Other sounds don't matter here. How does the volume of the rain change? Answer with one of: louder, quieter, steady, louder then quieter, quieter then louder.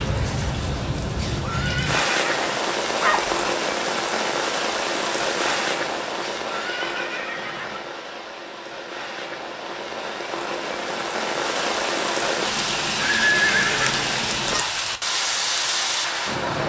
quieter then louder.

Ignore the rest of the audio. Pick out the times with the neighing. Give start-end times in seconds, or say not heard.
1.1-2.6, 6.4-7.8, 12.9-14.7.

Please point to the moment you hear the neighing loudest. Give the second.
13 s.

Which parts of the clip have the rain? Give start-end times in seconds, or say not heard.
0.0-16.6.